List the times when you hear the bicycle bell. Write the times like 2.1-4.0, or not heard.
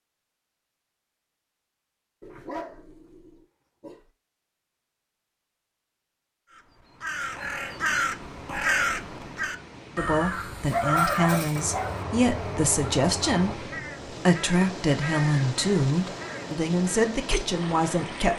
not heard.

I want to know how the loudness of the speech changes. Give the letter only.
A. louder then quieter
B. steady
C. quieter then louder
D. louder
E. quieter
B.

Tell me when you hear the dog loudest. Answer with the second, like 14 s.
11 s.